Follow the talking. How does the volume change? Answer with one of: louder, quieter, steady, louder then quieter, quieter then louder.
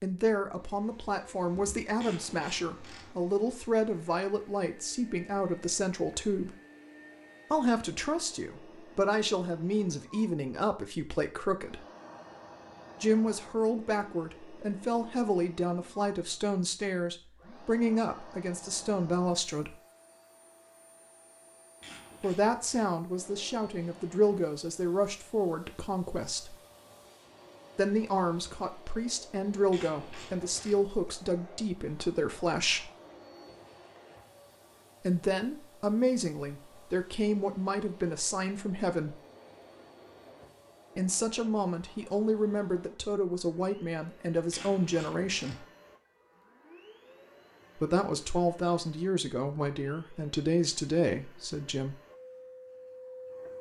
steady.